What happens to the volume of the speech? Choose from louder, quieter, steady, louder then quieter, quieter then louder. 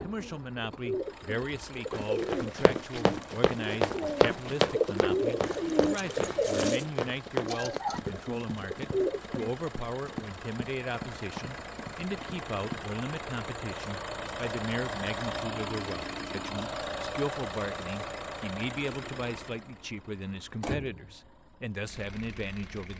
steady.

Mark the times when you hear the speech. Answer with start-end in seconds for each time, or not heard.
0.0-22.9.